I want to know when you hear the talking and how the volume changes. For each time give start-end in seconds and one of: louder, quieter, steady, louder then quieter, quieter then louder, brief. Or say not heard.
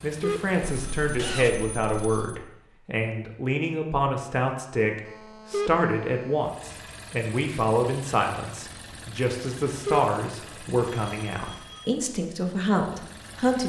0.0-13.6 steady.